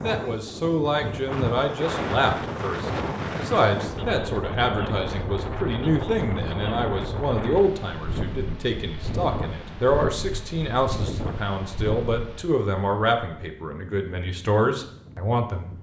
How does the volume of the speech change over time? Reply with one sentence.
The loudness of the speech stays about the same.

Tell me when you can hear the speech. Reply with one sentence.
The speech can be heard from 0.0 to 15.7 s.